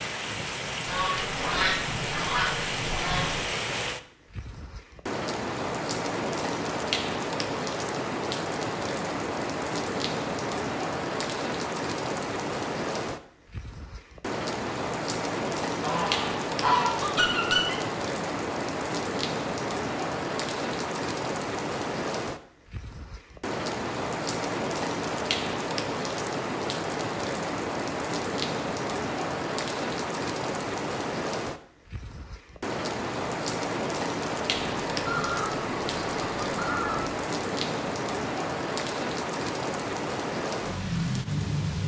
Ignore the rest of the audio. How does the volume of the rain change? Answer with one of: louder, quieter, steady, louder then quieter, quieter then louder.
steady.